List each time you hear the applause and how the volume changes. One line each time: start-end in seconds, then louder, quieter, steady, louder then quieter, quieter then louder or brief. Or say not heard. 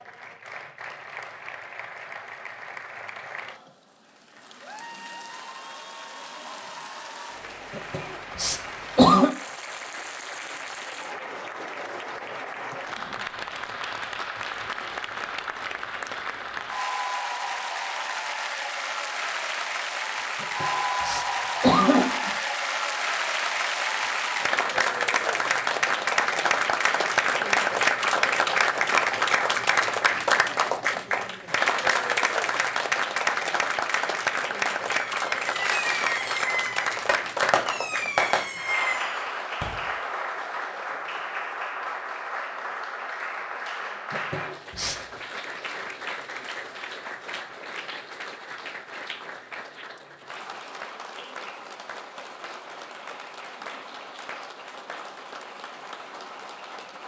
0.0-57.0 louder then quieter.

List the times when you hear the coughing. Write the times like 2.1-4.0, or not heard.
7.8-9.3, 20.4-22.4, 44.1-45.0.